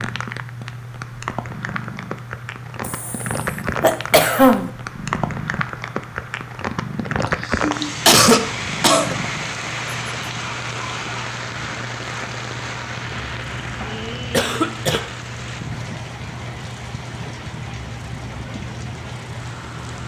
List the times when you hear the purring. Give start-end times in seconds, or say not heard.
0.0-20.0.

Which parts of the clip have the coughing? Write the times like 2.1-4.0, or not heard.
2.8-4.7, 7.2-9.2, 14.3-15.0.